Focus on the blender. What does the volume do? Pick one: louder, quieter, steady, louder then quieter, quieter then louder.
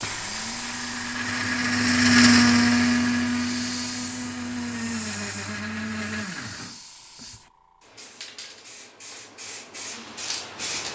louder then quieter.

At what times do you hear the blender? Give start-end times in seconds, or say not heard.
0.0-7.4.